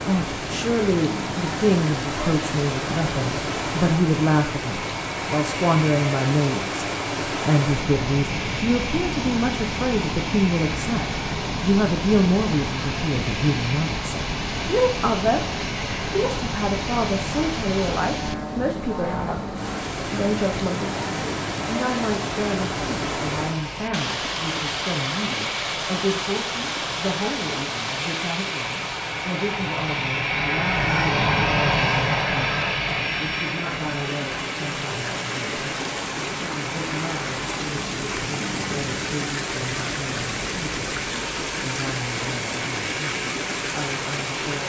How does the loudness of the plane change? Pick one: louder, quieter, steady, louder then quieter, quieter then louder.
louder then quieter.